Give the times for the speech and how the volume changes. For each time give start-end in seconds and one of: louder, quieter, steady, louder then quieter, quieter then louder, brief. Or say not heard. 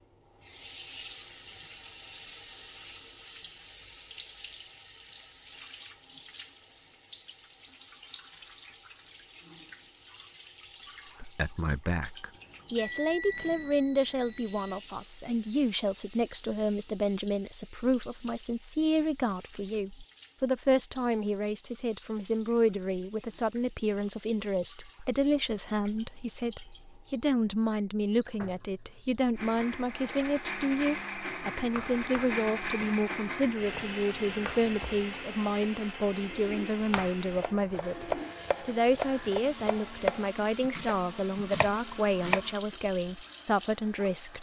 11.2-44.3 steady.